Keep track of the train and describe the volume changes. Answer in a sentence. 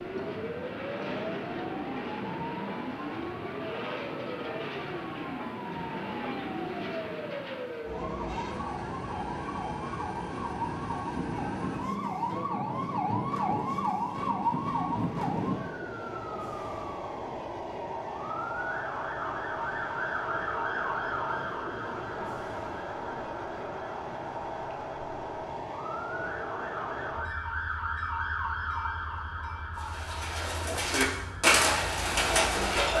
The loudness of the train goes down.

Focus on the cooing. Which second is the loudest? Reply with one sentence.
The loudest moment of the cooing is at 32 seconds.